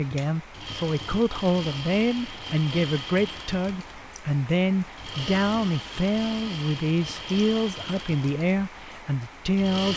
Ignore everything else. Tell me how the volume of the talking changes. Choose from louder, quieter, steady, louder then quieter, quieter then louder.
steady.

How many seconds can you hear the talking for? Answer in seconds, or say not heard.
10 s.